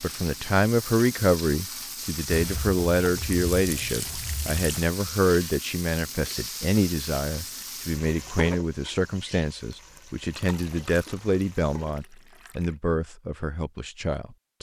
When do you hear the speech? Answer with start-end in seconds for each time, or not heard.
0.0-14.5.